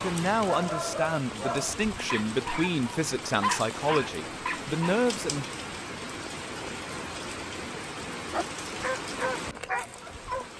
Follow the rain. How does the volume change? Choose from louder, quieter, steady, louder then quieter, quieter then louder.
steady.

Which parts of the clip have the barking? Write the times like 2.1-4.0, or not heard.
0.0-5.0, 8.3-10.5.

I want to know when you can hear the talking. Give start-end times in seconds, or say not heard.
0.0-5.5.